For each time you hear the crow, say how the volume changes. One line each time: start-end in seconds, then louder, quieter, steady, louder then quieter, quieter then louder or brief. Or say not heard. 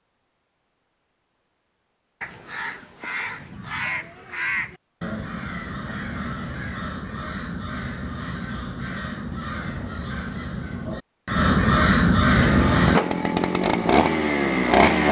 2.2-13.0 louder.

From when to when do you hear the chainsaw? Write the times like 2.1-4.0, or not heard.
12.3-15.0.